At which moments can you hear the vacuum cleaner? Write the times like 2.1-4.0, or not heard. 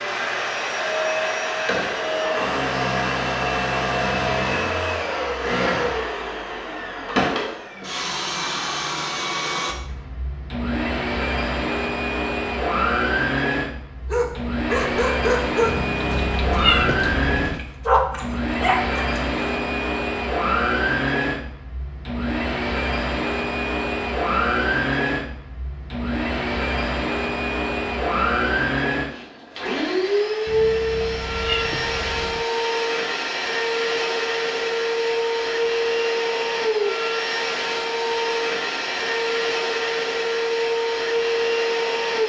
0.0-42.2.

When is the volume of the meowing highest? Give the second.
17 s.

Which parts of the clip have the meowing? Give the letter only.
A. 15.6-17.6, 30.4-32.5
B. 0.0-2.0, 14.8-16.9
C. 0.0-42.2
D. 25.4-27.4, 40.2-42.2
A.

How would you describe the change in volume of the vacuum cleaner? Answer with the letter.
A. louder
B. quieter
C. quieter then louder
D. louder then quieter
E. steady
E.